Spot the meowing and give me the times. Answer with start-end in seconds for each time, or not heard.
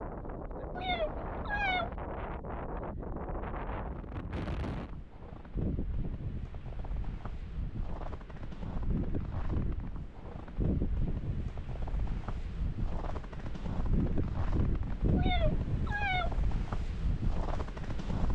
0.8-1.9, 15.2-16.4.